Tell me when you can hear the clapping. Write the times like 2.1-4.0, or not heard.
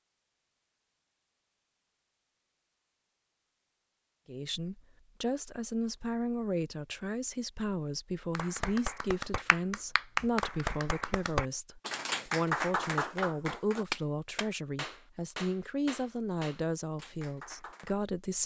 8.3-18.0.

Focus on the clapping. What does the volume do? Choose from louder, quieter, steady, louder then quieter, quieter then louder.
quieter.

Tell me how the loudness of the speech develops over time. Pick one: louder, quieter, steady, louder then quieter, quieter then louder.
steady.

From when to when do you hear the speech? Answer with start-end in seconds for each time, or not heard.
4.2-18.4.